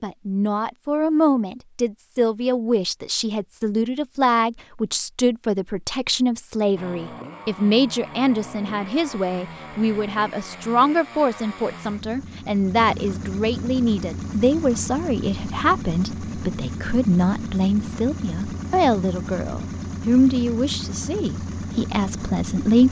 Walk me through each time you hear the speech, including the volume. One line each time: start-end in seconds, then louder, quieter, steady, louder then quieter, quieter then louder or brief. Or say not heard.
0.0-22.8 steady.